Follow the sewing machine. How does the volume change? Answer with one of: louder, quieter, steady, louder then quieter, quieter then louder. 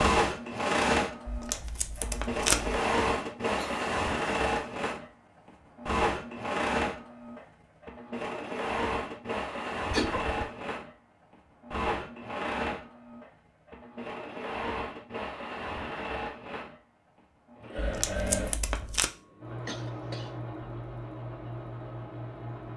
quieter.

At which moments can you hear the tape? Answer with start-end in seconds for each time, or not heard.
1.2-2.8, 17.8-19.1.